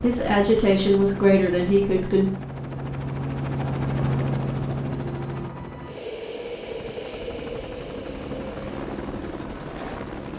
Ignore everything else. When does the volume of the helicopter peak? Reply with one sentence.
The volume of the helicopter peaks at 4 seconds.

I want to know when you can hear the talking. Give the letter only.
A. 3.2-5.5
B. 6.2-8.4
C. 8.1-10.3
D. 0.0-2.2
D.